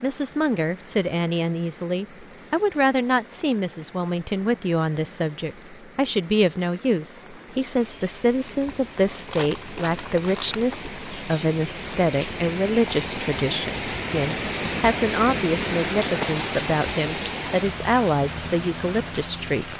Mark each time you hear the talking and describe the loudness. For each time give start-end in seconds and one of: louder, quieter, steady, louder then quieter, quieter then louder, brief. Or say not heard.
0.0-19.6 steady.